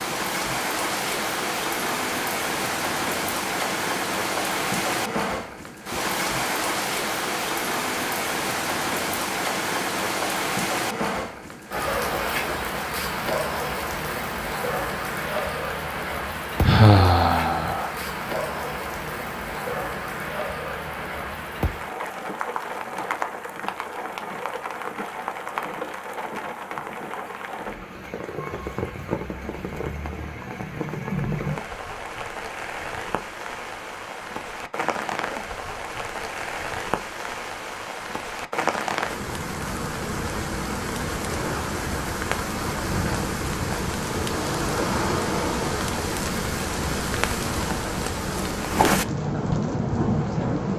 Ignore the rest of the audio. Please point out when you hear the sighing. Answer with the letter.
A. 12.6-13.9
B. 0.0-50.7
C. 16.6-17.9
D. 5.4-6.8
C.